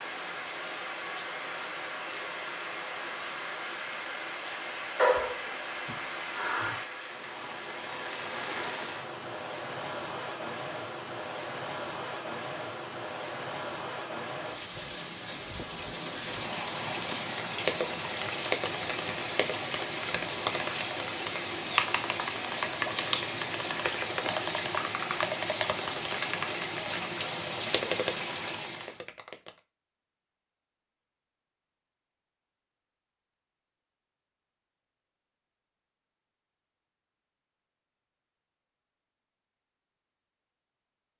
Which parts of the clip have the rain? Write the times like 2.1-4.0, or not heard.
0.0-29.0.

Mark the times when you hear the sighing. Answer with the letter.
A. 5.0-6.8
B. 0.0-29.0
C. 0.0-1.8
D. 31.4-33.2
A.